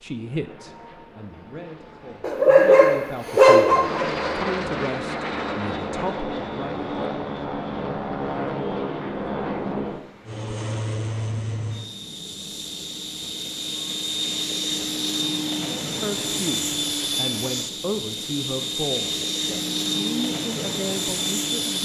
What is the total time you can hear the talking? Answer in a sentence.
You can hear the talking for 13 seconds altogether.